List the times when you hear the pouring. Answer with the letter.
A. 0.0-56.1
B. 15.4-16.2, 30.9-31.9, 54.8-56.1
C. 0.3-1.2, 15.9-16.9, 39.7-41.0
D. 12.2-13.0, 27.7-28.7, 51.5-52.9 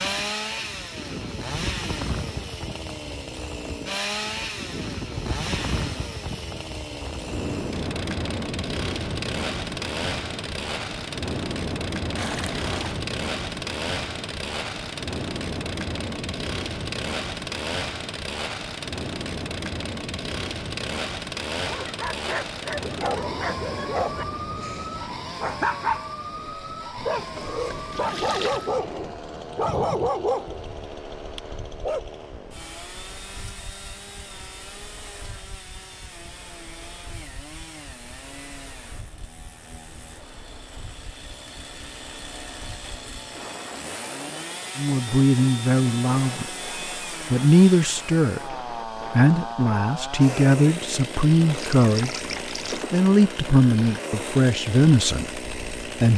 D.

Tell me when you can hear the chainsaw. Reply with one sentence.
You can hear the chainsaw from 0.0 to 56.1 s.